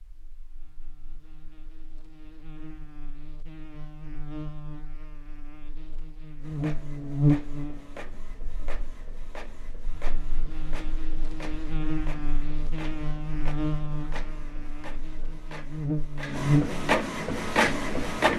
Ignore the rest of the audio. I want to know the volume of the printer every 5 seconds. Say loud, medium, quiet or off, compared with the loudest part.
off, quiet, quiet, loud.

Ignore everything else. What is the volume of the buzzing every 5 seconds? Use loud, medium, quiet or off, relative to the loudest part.
quiet, loud, medium, loud.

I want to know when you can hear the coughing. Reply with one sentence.
The coughing can't be heard in this clip.